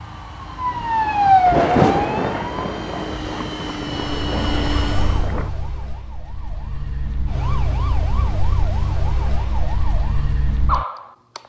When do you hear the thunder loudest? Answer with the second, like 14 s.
2 s.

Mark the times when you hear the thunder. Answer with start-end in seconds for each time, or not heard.
1.4-5.5.